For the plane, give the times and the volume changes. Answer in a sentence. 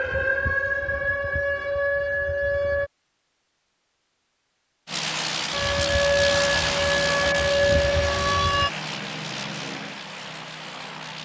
The plane can be heard from 4.8 to 11.2 s, getting quieter.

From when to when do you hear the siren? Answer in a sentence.
You can hear the siren from 0.0 to 2.9 s and from 5.5 to 8.7 s.